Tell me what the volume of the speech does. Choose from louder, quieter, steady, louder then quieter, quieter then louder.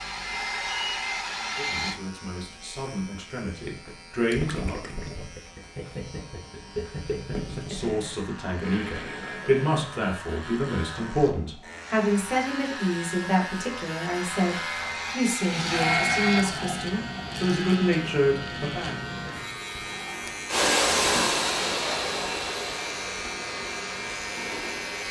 louder.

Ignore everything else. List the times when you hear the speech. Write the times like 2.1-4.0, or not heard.
1.4-4.8, 7.5-19.0.